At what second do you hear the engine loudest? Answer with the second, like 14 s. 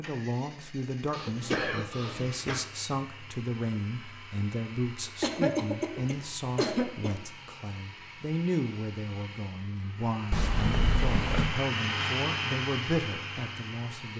12 s.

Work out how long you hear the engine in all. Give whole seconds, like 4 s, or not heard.
14 s.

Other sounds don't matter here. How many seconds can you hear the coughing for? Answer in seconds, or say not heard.
5 s.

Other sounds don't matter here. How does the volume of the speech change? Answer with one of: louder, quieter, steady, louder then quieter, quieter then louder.
steady.